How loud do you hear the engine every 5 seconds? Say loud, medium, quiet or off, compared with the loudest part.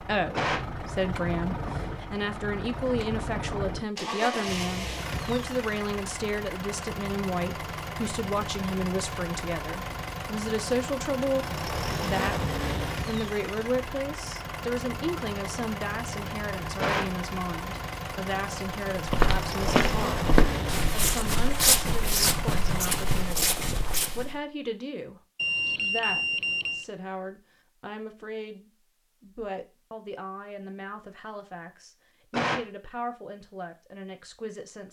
loud, loud, loud, loud, loud, off, off.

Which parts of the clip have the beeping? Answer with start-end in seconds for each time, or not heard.
25.4-26.9.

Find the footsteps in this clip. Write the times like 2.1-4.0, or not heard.
18.9-24.4.